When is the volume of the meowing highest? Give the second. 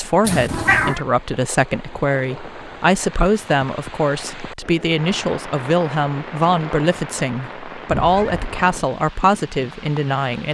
1 s.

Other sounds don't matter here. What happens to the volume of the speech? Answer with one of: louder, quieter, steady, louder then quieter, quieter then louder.
steady.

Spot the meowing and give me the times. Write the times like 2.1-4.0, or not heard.
0.2-1.0, 7.9-8.6.